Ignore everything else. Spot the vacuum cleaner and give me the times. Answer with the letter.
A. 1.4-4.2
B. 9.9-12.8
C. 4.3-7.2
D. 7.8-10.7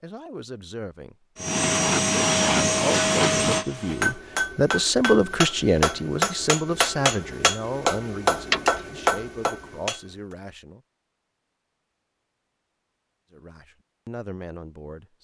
A.